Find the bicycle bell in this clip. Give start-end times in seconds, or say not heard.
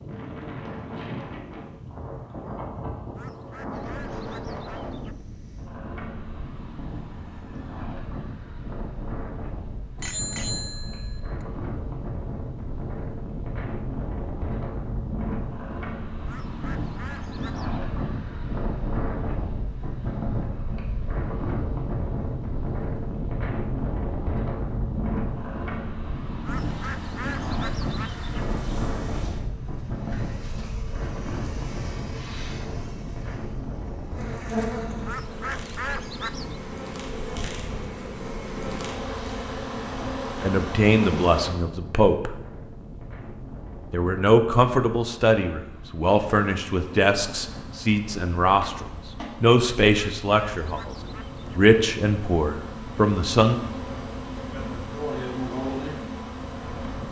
10.0-11.2.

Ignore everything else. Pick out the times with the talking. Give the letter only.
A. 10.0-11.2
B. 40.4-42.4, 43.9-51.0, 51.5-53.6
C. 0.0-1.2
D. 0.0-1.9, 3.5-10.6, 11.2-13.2
B.